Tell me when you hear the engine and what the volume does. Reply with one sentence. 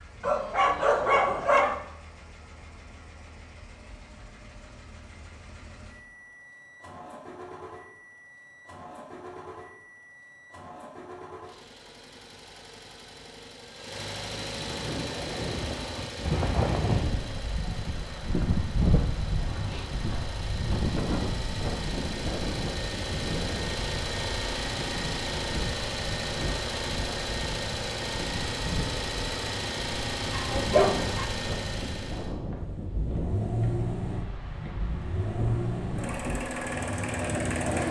You can hear the engine from 0.0 to 37.8 s, getting louder.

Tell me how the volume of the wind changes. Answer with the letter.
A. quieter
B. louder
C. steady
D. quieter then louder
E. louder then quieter
A.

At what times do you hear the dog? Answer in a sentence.
You can hear the dog from 0.2 to 1.8 s and from 30.3 to 31.2 s.